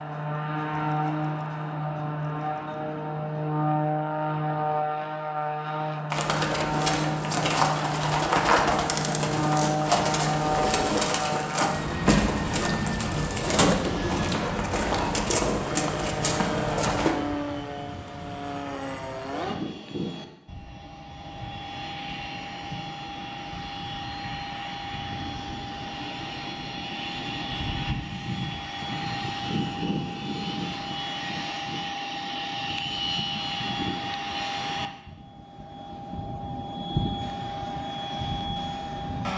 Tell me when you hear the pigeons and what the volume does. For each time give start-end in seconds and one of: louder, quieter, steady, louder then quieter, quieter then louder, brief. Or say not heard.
6.1-17.1 steady.